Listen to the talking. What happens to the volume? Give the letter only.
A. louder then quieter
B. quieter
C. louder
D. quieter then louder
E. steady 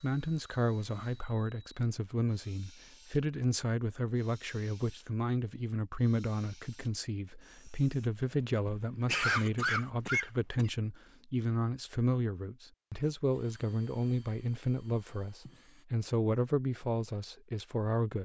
E.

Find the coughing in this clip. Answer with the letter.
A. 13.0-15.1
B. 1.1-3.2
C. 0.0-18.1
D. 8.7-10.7
D.